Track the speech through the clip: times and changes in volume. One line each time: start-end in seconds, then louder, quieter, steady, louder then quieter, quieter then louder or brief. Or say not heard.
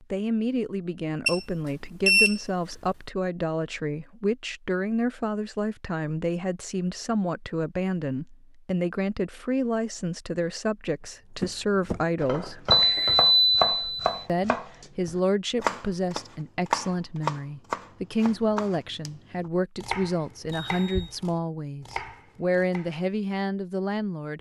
0.0-12.7 steady
14.2-24.3 steady.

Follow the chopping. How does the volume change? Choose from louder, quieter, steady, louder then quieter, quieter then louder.
quieter.